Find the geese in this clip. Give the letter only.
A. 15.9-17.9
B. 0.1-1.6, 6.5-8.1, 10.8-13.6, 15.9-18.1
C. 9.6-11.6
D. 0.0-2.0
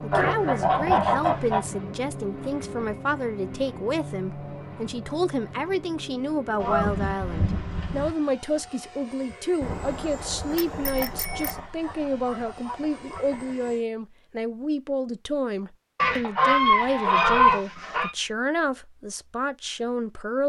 B.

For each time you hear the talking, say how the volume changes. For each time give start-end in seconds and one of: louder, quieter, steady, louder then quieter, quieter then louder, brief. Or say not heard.
0.0-20.4 steady.